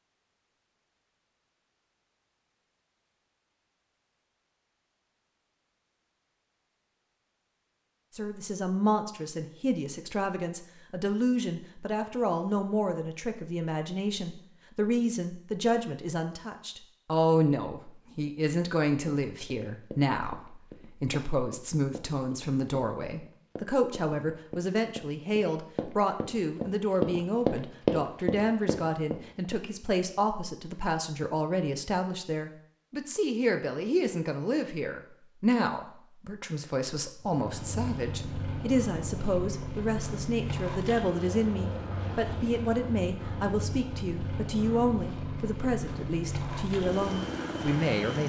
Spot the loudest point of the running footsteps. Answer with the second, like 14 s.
28 s.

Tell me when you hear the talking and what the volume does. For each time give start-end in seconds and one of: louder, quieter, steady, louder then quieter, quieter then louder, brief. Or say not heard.
8.2-48.2 steady.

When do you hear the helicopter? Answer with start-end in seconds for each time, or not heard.
37.2-48.2.